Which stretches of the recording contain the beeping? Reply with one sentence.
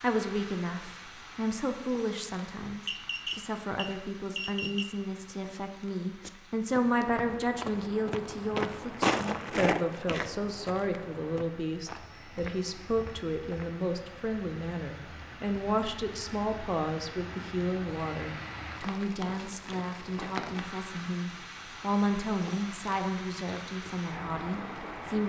You can hear the beeping from 2.9 to 4.8 s.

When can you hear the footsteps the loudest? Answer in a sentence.
The volume of the footsteps peaks at 9 seconds.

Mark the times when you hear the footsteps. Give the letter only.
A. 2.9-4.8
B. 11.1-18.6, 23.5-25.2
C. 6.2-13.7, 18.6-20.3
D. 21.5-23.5
C.